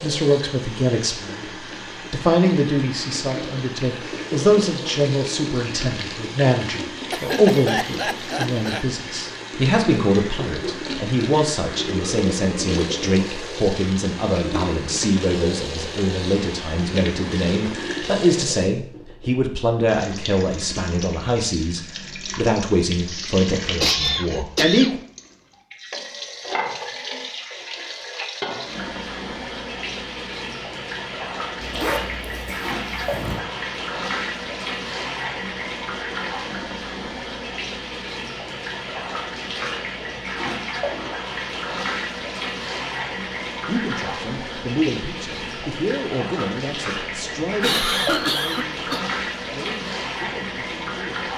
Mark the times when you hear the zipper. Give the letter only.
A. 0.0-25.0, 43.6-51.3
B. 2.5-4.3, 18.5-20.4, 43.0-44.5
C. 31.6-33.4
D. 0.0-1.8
C.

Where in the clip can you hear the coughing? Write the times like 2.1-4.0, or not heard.
7.1-8.8, 23.1-25.0, 47.6-49.0.